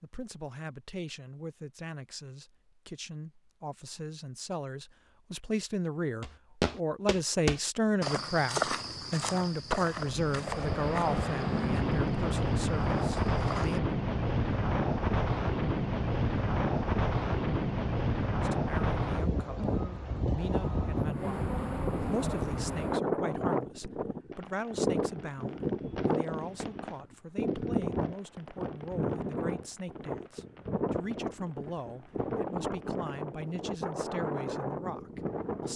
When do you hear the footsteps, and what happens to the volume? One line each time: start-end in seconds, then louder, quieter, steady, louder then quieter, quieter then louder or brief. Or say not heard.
6.2-13.8 quieter.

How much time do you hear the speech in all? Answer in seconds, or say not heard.
31 s.